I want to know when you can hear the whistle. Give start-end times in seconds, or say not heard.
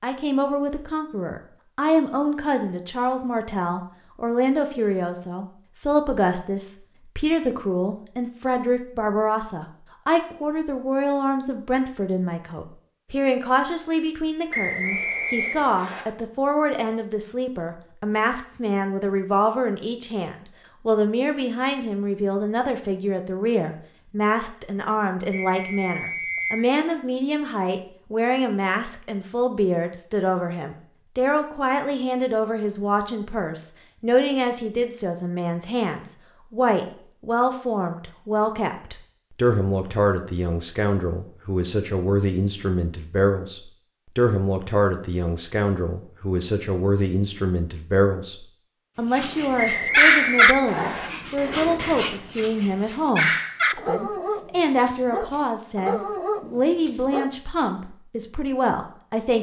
14.5-16.1, 25.3-26.6, 49.5-51.1.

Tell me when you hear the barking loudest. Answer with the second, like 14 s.
50 s.